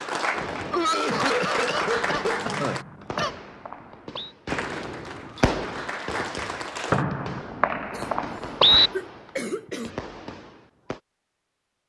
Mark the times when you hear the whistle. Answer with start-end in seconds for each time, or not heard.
2.5-4.3, 6.9-8.9.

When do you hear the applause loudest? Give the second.
2 s.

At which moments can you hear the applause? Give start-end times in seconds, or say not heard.
0.0-2.9, 4.5-7.0.